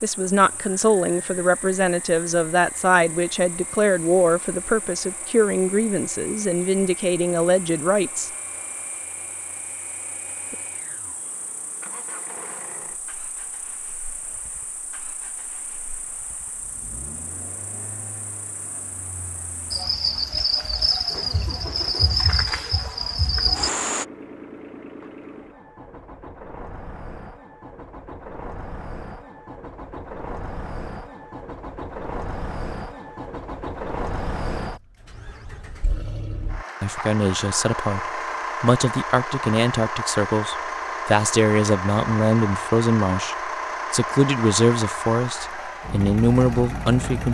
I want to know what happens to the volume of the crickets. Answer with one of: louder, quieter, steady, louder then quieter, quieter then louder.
louder.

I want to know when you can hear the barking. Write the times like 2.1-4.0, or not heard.
not heard.